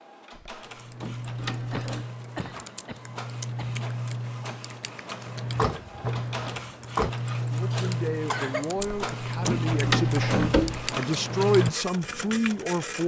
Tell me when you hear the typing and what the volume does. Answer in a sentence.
You can hear the typing from 0.6 to 12.5 s, getting louder.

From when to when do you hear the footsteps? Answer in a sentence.
The footsteps can't be heard in this clip.